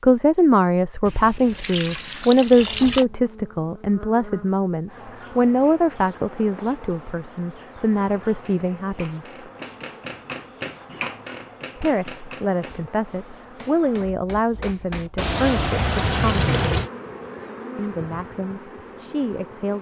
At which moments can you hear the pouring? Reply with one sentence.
You can hear the pouring from 1.1 to 3.0 s and from 15.2 to 16.9 s.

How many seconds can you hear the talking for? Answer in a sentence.
The talking can be heard for 16 seconds in total.